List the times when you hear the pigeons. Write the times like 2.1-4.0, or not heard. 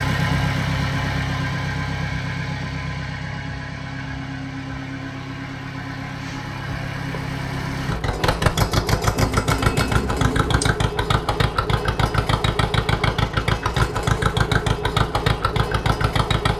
9.2-10.8.